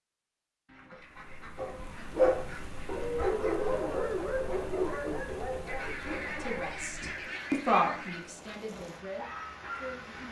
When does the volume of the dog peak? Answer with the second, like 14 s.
2 s.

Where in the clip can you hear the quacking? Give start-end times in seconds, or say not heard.
0.7-3.2, 5.7-8.2.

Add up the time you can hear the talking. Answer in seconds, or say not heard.
4 s.